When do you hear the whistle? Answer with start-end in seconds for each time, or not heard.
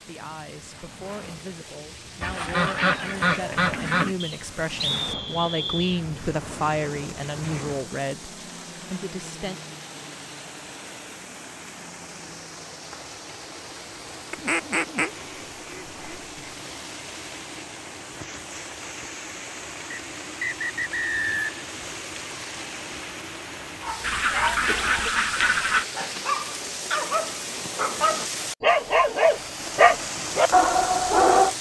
4.2-6.0, 19.9-21.6.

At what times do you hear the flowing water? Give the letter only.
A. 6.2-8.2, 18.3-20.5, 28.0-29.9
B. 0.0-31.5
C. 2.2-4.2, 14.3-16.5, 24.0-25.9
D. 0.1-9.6
B.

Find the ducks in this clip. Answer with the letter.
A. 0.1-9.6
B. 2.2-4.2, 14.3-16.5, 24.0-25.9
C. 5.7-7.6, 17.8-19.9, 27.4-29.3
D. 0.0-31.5
B.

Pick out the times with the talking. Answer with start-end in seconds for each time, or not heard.
0.1-9.6.